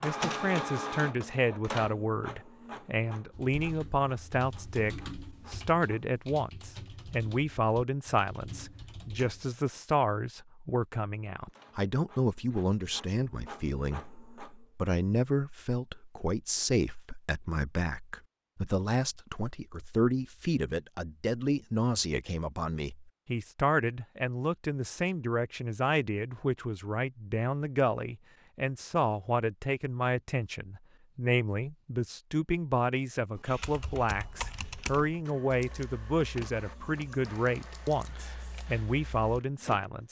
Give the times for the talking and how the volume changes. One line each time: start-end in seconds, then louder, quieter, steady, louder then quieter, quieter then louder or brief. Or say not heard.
0.0-40.0 steady.